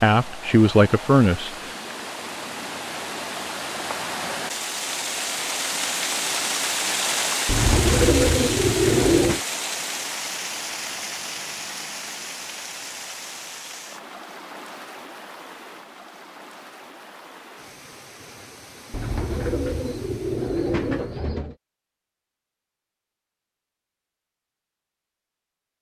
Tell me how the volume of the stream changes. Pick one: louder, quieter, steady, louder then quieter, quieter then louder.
louder then quieter.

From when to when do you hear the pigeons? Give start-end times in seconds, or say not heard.
7.5-9.4, 18.9-21.6.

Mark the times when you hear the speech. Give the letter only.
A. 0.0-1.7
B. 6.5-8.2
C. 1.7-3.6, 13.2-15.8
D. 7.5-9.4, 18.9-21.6
A.